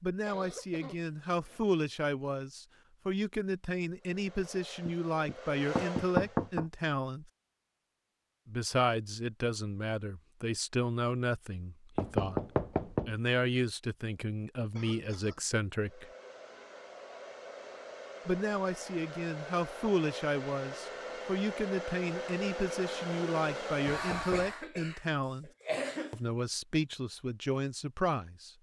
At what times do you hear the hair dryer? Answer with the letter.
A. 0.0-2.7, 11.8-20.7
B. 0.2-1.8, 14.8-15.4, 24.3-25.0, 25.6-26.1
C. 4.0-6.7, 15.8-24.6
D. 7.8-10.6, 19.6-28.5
C.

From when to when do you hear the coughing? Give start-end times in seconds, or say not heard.
0.2-1.8, 14.8-15.4, 24.3-25.0, 25.6-26.1.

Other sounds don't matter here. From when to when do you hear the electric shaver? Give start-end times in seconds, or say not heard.
not heard.